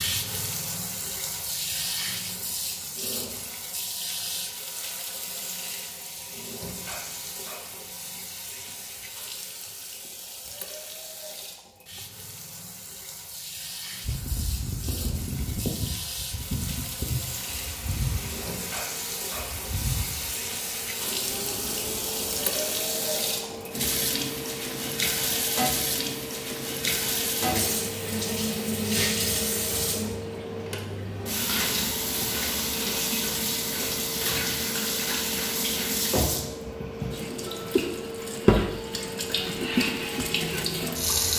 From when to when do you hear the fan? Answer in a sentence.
The fan can be heard from 14.0 to 41.3 s.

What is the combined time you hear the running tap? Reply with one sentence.
The running tap can be heard for 41 seconds in total.